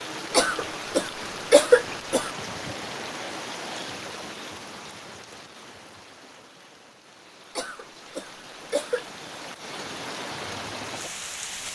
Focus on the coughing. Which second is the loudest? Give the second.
2 s.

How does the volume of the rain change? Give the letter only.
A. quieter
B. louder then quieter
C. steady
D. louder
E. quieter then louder
E.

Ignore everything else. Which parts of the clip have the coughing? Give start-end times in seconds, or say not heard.
0.3-2.3, 7.5-9.1.